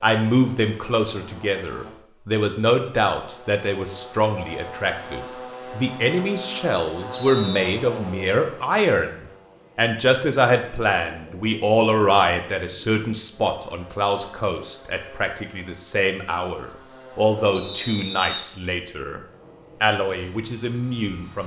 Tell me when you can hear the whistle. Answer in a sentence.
The whistle can be heard from 7.1 to 7.7 s and from 17.6 to 18.4 s.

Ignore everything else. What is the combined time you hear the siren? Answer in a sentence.
The siren can't be heard in this clip.